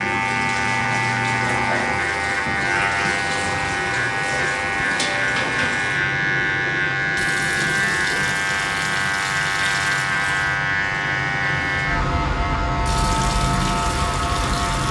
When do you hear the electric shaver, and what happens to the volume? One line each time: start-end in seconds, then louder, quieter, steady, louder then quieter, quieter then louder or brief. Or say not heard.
0.0-14.8 steady.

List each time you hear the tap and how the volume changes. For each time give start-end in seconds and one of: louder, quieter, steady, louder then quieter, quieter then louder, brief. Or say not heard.
0.0-14.8 steady.